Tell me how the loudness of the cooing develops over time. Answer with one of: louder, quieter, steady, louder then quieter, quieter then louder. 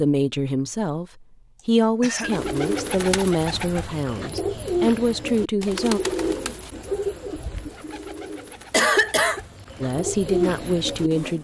quieter then louder.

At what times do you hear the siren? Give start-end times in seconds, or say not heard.
not heard.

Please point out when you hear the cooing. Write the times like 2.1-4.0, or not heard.
2.1-11.3.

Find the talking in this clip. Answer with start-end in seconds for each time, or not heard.
0.0-6.0, 9.8-11.3.